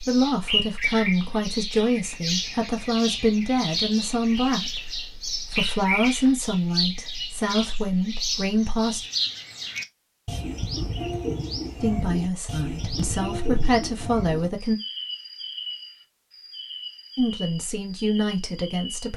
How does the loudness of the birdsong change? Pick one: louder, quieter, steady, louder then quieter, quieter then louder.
quieter.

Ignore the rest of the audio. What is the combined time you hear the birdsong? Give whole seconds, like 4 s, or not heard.
19 s.